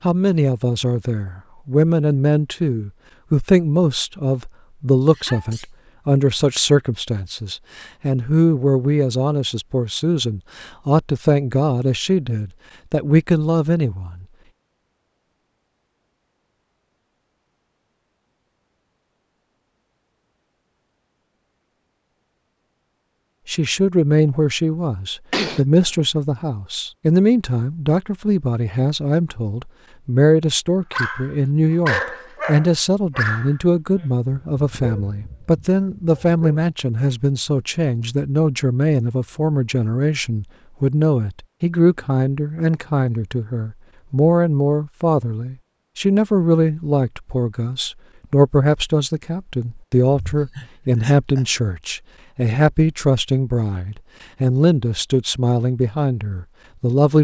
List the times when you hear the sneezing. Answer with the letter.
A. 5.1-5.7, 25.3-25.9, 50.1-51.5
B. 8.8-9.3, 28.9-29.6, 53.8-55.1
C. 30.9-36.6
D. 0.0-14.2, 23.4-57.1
A.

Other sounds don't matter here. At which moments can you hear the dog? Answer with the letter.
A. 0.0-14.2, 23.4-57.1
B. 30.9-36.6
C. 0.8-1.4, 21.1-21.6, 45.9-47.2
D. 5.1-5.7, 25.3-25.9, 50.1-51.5
B.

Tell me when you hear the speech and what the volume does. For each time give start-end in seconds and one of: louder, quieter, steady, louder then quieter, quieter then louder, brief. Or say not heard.
0.0-14.2 steady
23.4-57.1 steady.